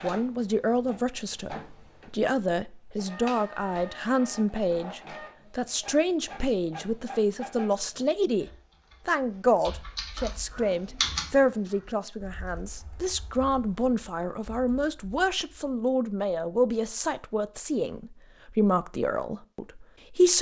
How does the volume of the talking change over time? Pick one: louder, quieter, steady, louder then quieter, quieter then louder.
steady.